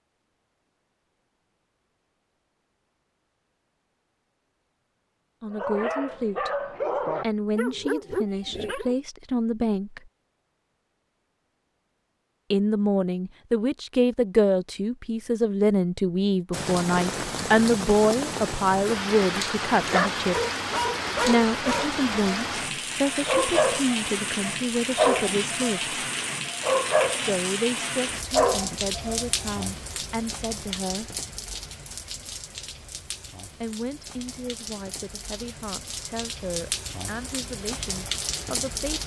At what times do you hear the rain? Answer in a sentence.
The rain can be heard from 16.5 to 39.0 s.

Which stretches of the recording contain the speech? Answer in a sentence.
The speech can be heard from 5.4 to 6.5 s, from 7.2 to 10.1 s, from 12.5 to 20.4 s, from 21.2 to 25.9 s, from 27.2 to 31.1 s and from 33.6 to 39.0 s.